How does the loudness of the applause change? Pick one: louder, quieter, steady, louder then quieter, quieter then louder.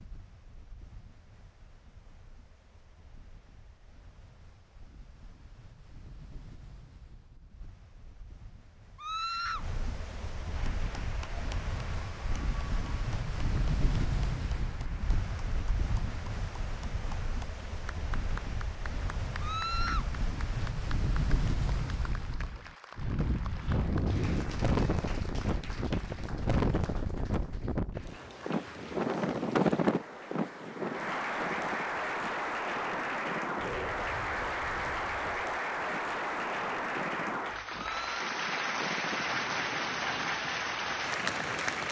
louder.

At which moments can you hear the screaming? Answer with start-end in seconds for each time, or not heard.
8.9-9.7, 19.4-20.1, 37.7-38.2.